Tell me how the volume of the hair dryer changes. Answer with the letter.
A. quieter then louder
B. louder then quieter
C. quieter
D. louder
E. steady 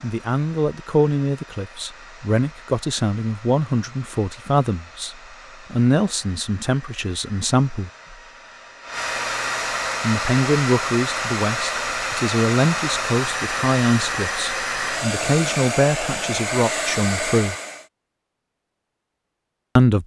D.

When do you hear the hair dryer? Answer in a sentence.
The hair dryer can be heard from 0.0 to 17.9 s.